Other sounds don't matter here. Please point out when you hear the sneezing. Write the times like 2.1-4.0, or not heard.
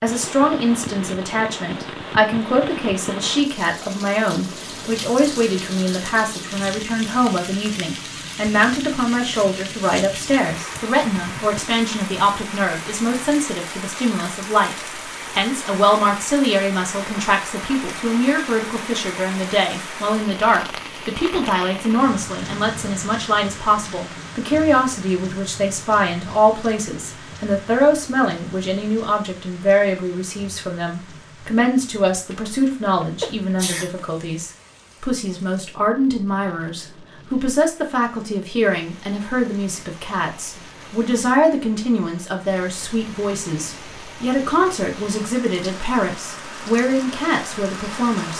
32.3-34.1.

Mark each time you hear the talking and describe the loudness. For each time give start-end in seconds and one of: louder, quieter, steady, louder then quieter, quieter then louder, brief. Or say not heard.
0.0-48.3 steady.